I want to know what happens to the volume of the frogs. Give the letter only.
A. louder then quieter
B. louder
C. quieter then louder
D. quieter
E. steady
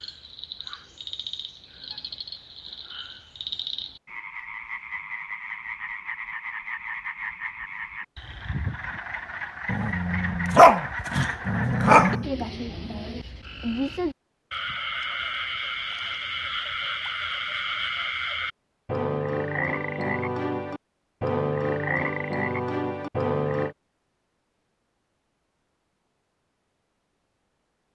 B.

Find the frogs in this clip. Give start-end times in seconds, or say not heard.
0.0-23.8.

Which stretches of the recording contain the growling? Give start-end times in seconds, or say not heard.
9.7-12.2.